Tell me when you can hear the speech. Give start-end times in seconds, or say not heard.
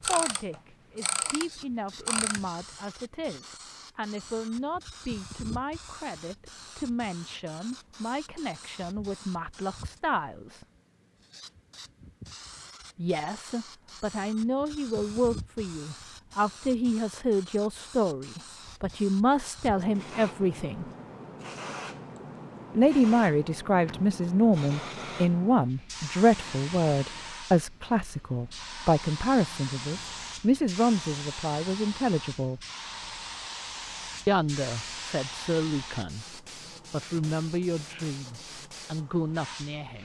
0.0-10.7, 12.9-20.9, 22.8-32.6, 34.2-40.0.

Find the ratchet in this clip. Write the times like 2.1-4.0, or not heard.
0.0-2.5.